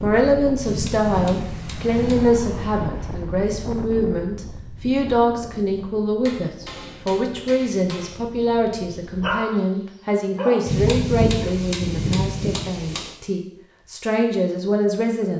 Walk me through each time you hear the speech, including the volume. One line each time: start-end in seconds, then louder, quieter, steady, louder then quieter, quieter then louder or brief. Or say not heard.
0.0-15.3 steady.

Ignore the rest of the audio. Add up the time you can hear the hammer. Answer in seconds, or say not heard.
6 s.